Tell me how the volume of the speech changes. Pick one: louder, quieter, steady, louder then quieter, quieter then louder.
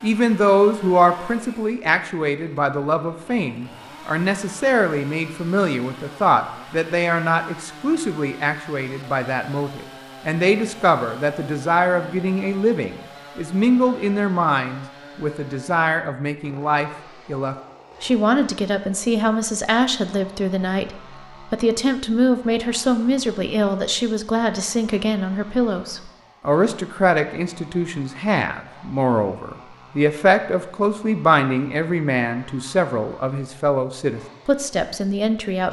steady.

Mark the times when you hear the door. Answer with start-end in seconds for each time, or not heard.
not heard.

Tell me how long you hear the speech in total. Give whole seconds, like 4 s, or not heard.
35 s.